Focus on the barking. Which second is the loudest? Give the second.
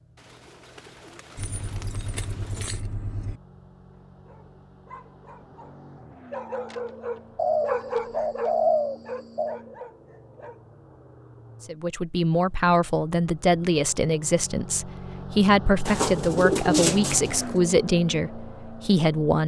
8 s.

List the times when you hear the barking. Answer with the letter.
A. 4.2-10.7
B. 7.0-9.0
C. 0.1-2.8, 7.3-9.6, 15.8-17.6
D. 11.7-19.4
A.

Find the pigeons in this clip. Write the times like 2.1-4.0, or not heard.
0.1-2.8, 7.3-9.6, 15.8-17.6.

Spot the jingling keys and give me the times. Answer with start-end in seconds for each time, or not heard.
1.4-3.4.